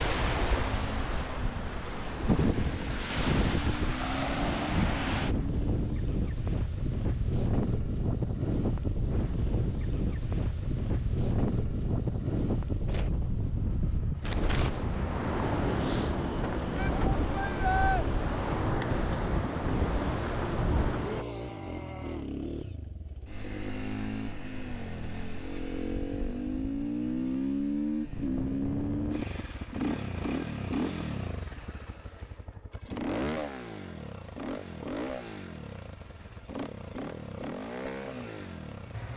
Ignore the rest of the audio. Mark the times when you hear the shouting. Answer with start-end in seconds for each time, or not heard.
16.8-18.1, 21.0-22.3.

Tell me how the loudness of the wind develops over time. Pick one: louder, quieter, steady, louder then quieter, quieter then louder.
steady.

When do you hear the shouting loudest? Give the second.
18 s.